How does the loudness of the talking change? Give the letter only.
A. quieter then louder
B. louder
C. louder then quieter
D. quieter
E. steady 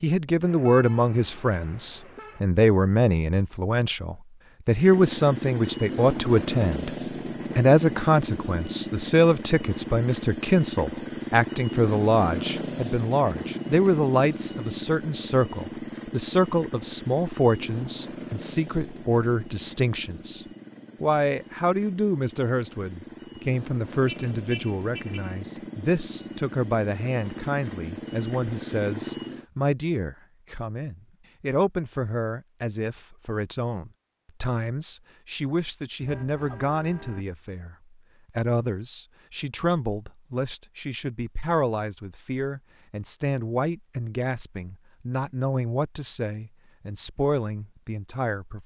D.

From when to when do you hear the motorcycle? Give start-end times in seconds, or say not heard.
4.7-29.4.